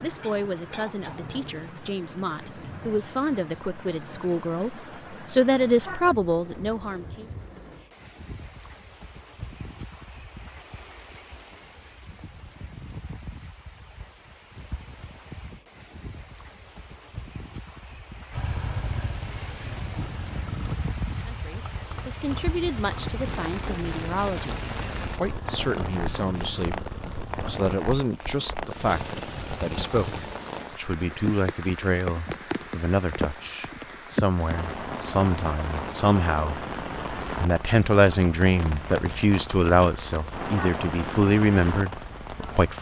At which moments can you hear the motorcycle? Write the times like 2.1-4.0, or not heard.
18.3-27.8.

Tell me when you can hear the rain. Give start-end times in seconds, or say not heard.
0.0-42.7.